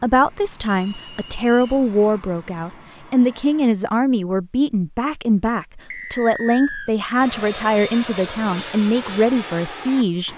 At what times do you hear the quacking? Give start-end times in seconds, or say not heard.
not heard.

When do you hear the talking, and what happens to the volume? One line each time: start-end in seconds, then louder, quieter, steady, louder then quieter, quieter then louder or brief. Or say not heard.
0.0-10.3 steady.